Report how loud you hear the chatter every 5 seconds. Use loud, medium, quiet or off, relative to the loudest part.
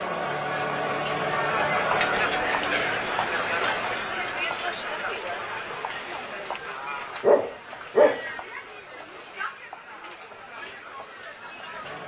loud, medium, quiet.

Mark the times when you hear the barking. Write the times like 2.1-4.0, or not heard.
7.2-8.2.